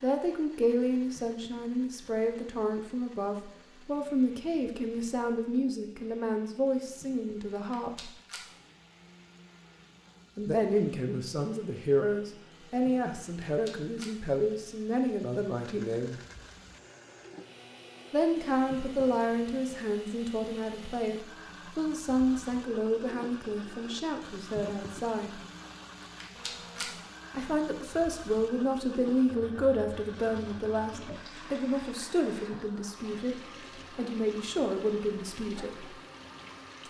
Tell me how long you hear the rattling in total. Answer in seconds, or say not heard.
3 s.